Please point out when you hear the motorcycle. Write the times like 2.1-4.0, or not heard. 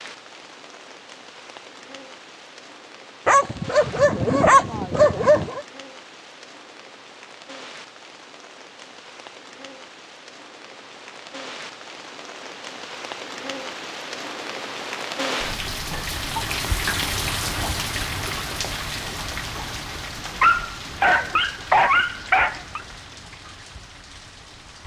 not heard.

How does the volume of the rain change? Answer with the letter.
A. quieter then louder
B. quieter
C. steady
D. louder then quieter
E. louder
D.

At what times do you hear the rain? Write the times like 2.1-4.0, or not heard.
0.0-24.8.